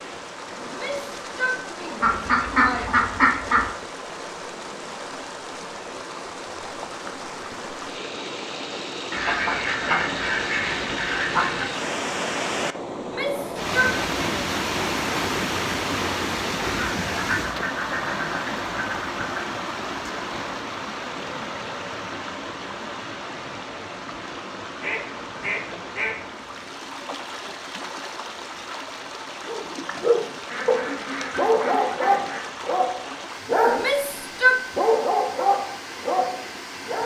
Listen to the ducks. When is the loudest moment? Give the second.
3 s.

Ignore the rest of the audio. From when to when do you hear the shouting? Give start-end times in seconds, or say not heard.
0.7-3.0, 13.0-14.4, 33.6-34.6.